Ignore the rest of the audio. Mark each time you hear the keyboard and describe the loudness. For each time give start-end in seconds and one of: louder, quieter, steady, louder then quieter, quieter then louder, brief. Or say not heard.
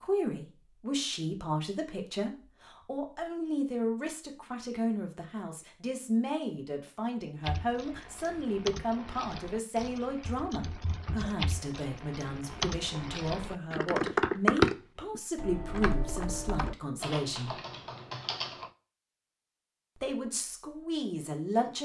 7.4-18.7 louder then quieter.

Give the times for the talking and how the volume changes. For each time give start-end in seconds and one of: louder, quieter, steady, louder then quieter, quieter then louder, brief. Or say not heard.
0.0-17.6 steady
19.9-21.7 brief.